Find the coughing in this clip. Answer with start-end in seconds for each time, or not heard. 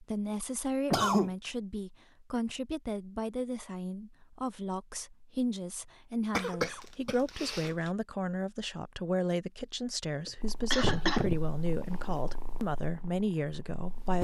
0.9-1.3, 6.3-7.9, 10.2-11.4.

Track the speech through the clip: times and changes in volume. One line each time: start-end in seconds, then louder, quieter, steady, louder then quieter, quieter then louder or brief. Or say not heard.
0.0-14.1 steady.